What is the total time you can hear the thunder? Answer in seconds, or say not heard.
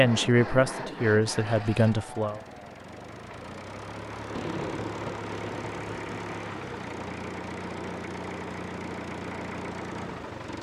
2 s.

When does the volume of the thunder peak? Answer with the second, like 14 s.
5 s.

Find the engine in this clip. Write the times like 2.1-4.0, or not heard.
0.0-10.5.